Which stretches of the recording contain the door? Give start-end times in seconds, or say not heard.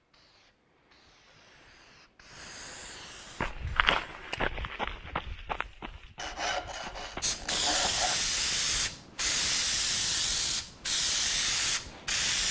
not heard.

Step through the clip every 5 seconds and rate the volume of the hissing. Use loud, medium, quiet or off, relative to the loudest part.
quiet, loud, loud.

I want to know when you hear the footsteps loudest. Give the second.
4 s.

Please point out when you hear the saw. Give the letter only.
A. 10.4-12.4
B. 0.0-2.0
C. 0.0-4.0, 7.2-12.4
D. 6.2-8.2
D.